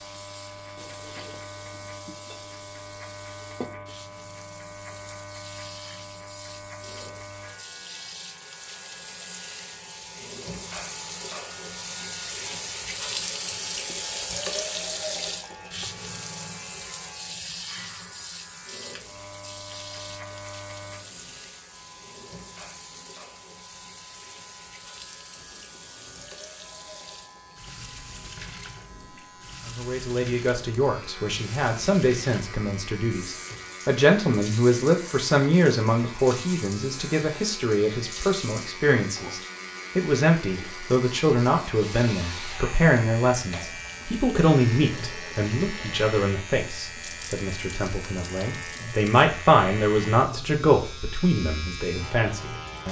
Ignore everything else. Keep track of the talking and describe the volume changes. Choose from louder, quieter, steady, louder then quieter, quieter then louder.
steady.